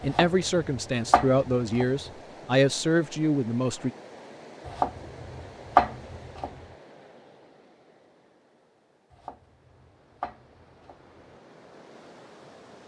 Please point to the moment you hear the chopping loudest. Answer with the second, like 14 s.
6 s.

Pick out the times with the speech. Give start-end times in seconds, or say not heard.
0.0-3.9.